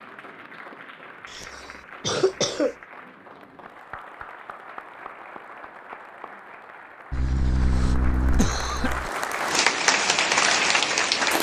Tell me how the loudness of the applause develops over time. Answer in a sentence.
The volume of the applause goes up.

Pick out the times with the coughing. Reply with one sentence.
You can hear the coughing from 1.3 to 2.8 s and from 7.1 to 9.1 s.